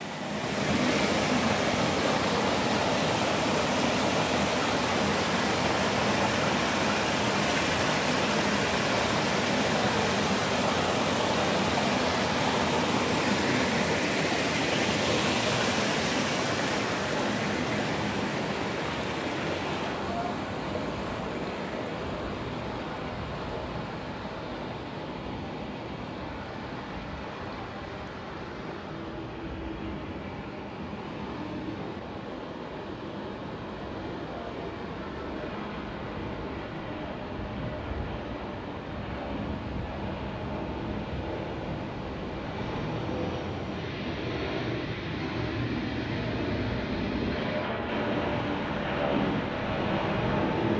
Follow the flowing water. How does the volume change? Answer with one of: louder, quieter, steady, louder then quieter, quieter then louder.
quieter.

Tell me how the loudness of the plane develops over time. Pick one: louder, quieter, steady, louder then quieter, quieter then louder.
louder.